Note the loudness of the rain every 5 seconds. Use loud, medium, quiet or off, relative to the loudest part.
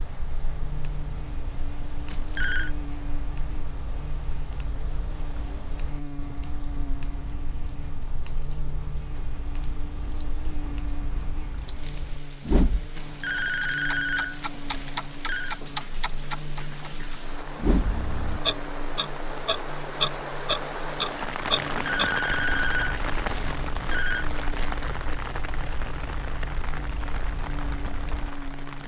quiet, quiet, quiet, medium, loud, medium.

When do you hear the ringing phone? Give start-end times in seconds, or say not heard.
2.0-2.7, 12.9-15.6, 21.8-24.2.